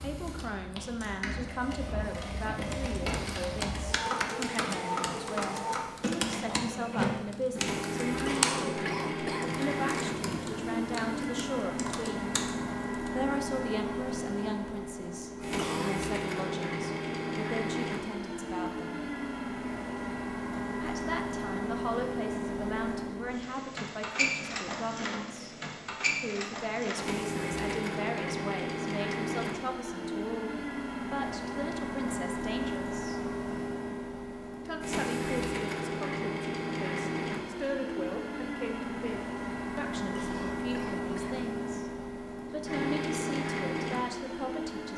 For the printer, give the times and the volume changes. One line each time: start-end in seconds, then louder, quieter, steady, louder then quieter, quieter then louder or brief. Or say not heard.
0.0-44.9 steady.